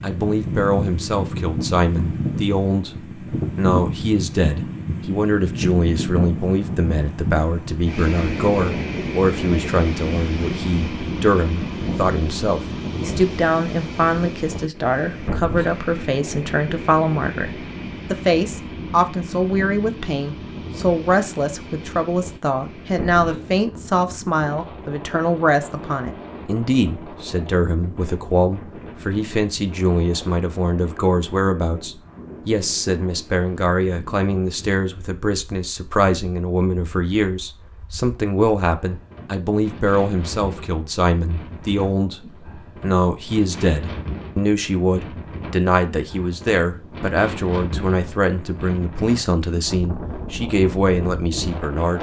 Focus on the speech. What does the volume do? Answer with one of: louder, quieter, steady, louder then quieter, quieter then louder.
steady.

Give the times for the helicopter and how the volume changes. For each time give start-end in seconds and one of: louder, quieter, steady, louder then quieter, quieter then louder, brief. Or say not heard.
not heard.